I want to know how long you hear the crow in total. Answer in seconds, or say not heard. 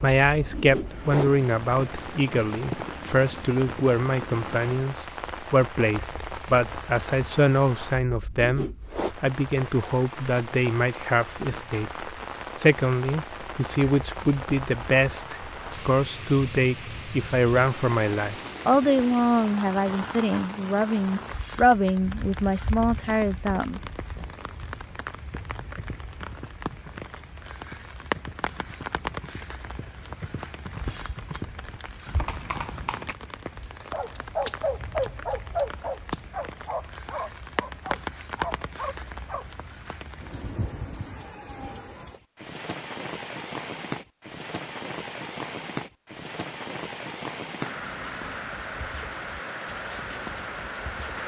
not heard.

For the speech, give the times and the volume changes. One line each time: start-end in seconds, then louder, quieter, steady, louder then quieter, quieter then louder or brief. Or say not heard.
0.0-23.8 steady.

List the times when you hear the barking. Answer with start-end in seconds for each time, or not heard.
33.6-39.5.